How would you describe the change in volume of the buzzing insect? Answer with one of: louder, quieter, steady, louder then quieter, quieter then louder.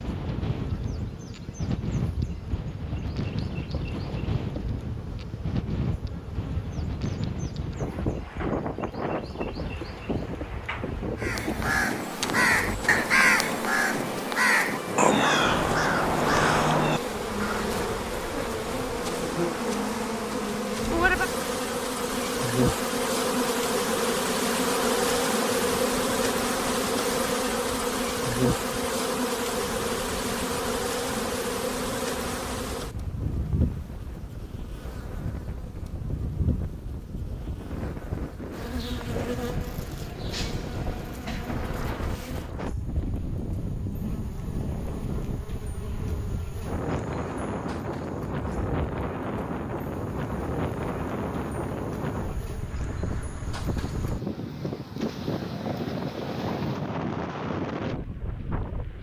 louder then quieter.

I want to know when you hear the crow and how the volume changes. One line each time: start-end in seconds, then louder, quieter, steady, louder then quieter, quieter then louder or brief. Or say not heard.
11.2-17.7 steady.